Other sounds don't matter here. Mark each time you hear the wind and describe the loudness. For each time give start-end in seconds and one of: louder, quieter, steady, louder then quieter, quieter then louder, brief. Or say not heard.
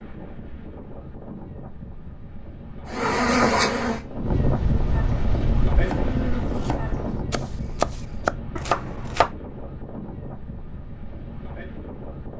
0.0-12.3 louder then quieter.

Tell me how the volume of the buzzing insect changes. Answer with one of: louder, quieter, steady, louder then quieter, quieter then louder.
quieter then louder.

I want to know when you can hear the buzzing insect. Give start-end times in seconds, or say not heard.
2.9-7.2.